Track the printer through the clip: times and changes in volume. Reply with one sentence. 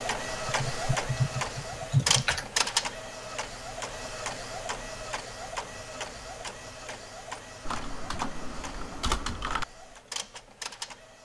You can hear the printer from 0.0 to 11.1 s, getting quieter.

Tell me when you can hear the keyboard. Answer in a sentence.
The keyboard can be heard from 0.5 to 2.5 s and from 7.7 to 9.7 s.